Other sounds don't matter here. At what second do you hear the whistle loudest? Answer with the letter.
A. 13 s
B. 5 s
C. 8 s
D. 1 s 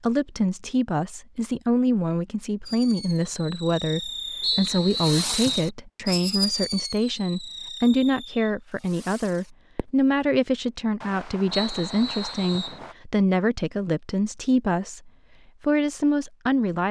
B.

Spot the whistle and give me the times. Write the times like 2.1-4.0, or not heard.
4.4-5.7, 11.5-12.8.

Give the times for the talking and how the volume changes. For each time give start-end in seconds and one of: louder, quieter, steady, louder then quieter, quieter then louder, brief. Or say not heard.
0.0-16.8 steady.